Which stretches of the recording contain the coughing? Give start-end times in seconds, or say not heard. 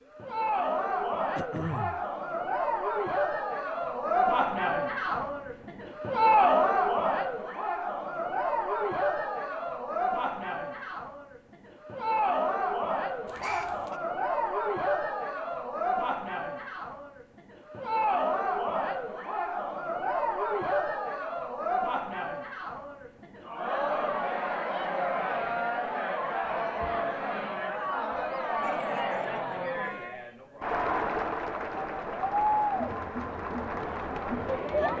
1.4-2.0, 13.2-14.0, 28.2-30.1.